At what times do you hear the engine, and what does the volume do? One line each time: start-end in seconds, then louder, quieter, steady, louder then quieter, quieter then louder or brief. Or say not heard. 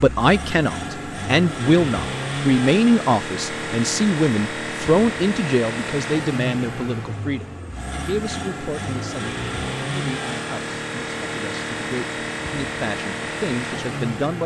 0.0-14.4 steady.